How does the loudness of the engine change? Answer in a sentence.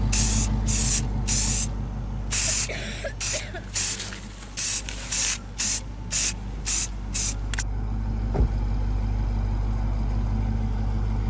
The loudness of the engine goes down, then up.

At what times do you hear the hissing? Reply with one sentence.
You can hear the hissing from 0.1 to 7.7 s.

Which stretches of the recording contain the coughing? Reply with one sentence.
The coughing can be heard from 2.5 to 3.6 s.